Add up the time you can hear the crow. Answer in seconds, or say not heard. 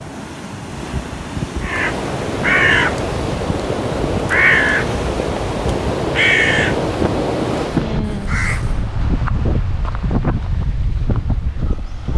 7 s.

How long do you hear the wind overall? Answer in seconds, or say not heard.
12 s.